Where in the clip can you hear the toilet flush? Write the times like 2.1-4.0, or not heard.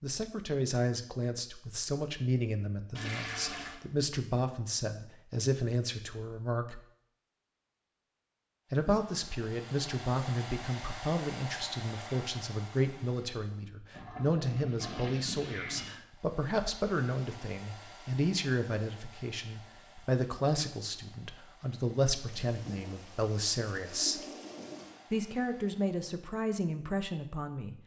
3.0-3.8, 13.9-15.9, 22.3-25.0.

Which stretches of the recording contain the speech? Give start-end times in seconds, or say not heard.
0.0-6.8, 8.7-24.2, 25.1-27.8.